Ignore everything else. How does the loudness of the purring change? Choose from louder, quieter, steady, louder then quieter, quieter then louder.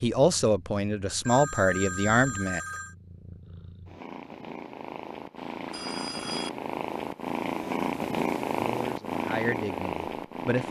louder.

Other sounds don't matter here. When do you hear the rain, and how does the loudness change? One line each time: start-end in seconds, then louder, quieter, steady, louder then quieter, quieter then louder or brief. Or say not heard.
not heard.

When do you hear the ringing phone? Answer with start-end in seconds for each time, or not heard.
1.2-3.0, 5.3-6.5.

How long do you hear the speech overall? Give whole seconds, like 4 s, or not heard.
5 s.